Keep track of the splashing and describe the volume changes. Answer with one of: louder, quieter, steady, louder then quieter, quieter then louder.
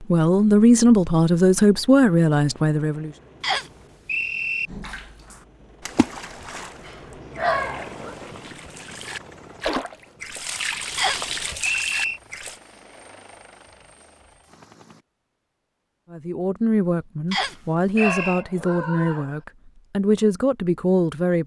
quieter then louder.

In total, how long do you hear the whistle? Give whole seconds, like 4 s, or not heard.
4 s.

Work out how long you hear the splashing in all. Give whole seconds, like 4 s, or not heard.
8 s.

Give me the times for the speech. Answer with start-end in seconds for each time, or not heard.
0.0-3.1, 16.1-21.4.